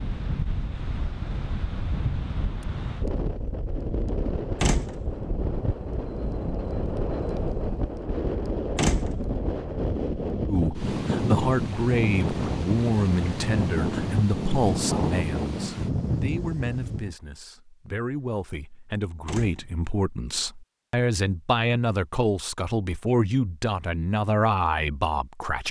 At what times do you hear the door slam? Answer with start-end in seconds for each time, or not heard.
4.6-5.1, 8.8-9.3, 19.2-19.9.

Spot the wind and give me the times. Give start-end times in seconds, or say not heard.
0.0-17.1.